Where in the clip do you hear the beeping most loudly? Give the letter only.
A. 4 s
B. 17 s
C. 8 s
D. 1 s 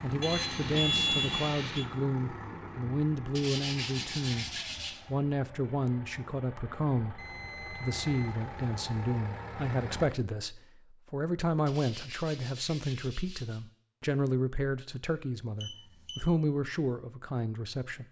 D.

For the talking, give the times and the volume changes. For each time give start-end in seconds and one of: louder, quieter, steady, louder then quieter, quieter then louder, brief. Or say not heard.
0.0-4.5 steady
5.0-18.0 steady.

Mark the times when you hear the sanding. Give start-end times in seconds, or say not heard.
3.4-5.0, 11.7-13.6.